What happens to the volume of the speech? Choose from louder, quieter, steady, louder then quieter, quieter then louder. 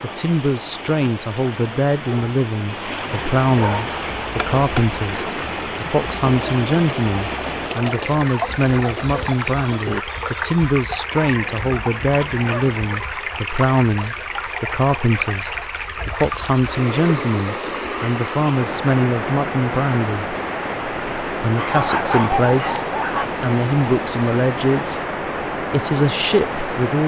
steady.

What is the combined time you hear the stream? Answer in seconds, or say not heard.
27 s.